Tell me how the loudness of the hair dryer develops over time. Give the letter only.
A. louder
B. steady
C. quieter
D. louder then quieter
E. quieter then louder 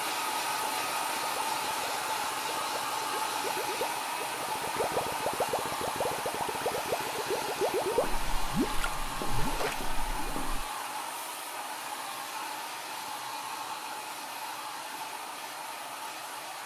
C.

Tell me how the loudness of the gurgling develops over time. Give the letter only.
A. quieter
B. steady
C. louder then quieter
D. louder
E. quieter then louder
D.